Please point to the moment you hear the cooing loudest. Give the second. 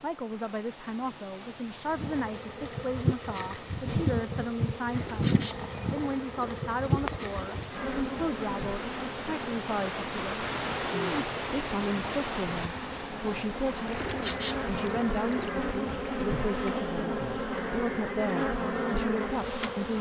14 s.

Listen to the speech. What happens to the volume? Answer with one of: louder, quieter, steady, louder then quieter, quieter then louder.
steady.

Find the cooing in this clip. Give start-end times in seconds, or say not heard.
5.0-7.7, 13.9-15.5.